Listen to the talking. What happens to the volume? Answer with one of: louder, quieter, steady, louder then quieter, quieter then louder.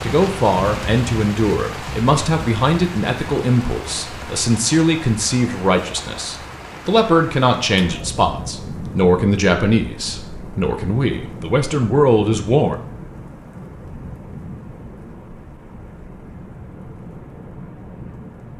steady.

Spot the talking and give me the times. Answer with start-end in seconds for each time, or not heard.
0.0-12.8.